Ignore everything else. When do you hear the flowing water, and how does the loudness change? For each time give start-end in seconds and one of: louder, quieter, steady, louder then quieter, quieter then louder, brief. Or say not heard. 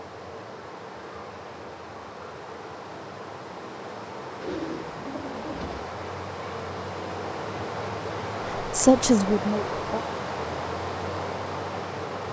0.0-12.2 louder.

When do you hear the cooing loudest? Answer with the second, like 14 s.
5 s.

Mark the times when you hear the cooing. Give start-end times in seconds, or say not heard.
4.4-6.0.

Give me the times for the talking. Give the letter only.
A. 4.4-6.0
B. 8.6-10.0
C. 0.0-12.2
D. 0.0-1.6
B.